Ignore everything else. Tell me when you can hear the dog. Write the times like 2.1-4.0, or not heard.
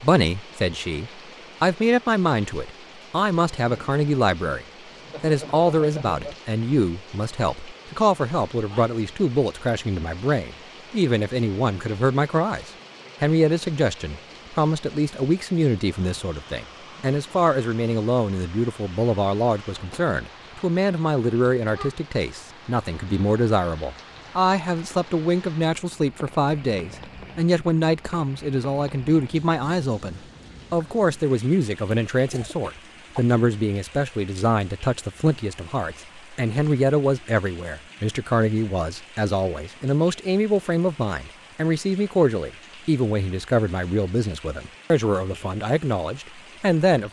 not heard.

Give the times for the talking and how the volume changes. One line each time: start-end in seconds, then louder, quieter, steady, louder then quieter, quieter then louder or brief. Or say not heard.
0.0-47.0 steady.